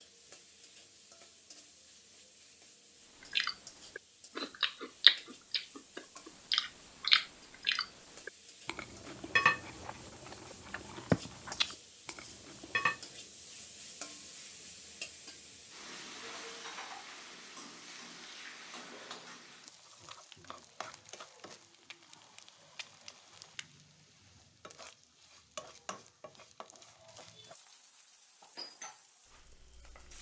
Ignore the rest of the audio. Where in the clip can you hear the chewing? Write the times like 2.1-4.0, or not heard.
3.3-13.0.